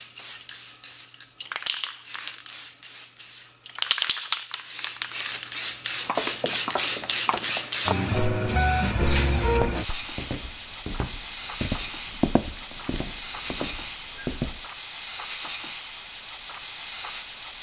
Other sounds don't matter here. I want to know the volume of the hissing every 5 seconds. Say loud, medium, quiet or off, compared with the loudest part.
medium, loud, loud, loud.